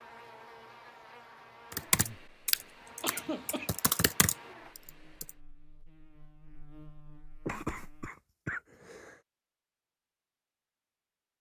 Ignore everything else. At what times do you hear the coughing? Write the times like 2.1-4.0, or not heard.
3.0-3.7, 7.5-9.2.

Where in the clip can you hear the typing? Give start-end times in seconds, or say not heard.
1.7-5.3.